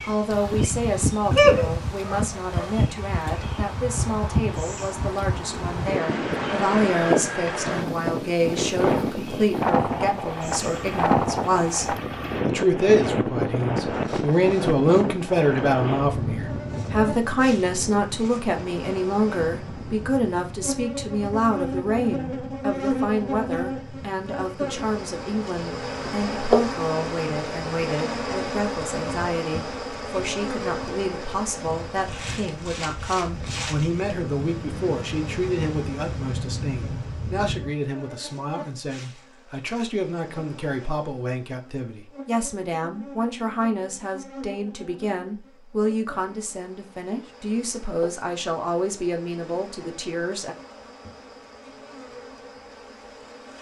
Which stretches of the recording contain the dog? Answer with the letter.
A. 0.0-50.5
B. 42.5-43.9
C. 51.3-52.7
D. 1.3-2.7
D.